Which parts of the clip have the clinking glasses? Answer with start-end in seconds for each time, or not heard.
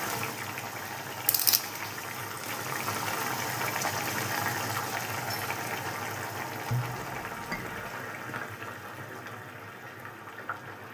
6.7-7.9.